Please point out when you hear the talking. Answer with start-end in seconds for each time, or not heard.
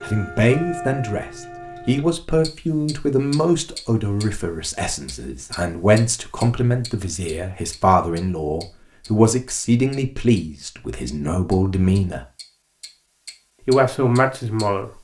0.0-12.2, 13.7-14.9.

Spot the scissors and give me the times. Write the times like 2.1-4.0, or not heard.
not heard.